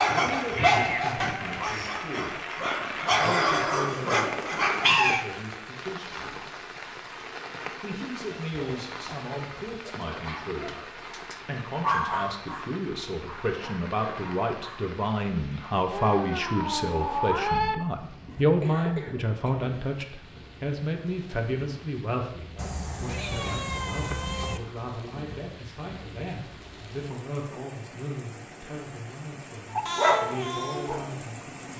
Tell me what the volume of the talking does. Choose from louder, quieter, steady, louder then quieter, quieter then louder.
louder then quieter.